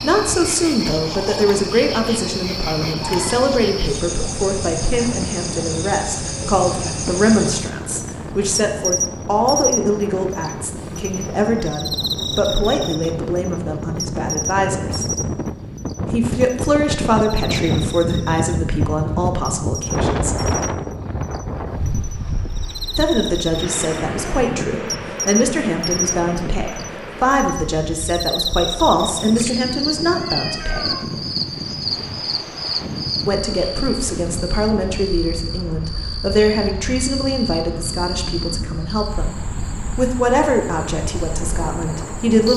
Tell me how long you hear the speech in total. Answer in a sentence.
You can hear the speech for 37 seconds altogether.